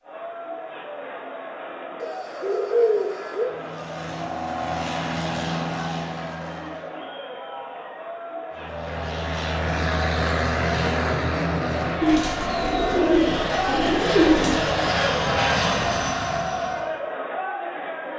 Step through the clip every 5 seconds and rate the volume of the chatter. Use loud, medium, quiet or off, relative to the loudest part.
medium, medium, loud, loud.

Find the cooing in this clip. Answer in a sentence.
The cooing can be heard from 2.0 to 3.5 s and from 12.0 to 14.7 s.